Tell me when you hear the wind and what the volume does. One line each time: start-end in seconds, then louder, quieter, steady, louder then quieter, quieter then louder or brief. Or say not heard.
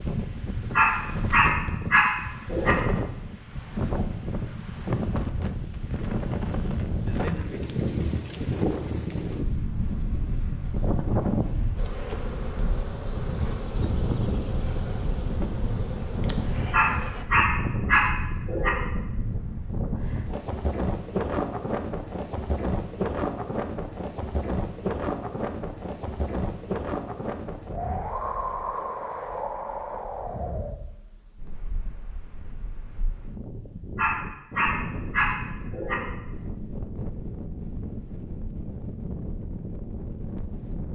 0.0-40.8 quieter.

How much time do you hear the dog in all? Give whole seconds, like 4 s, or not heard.
6 s.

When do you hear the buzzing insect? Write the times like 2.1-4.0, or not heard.
11.8-17.2.